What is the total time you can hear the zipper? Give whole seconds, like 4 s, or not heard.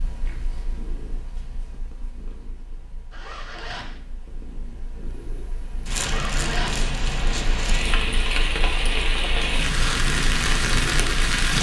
2 s.